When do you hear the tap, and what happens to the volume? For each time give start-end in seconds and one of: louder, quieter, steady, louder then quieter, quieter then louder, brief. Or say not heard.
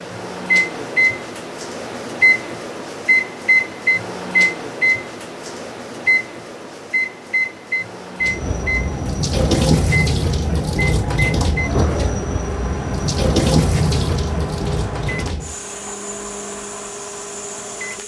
8.2-18.0 quieter.